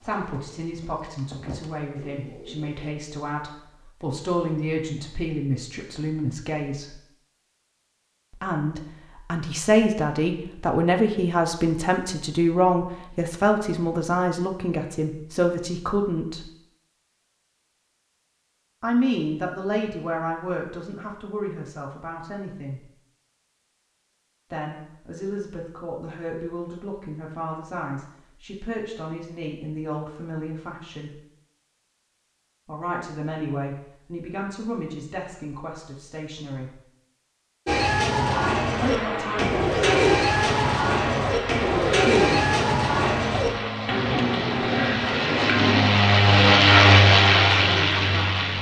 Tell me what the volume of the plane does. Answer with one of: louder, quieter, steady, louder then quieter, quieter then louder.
louder.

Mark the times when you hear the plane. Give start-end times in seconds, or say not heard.
38.2-48.5.